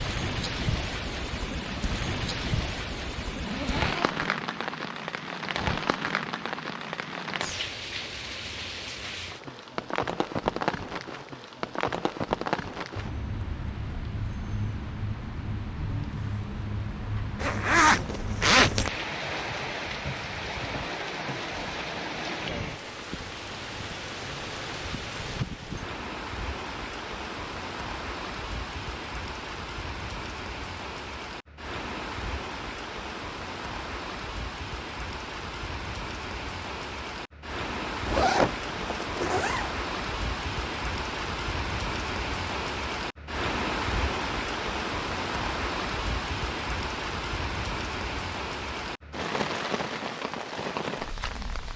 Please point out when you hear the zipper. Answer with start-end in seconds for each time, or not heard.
3.3-4.3, 17.4-18.9, 38.0-39.7.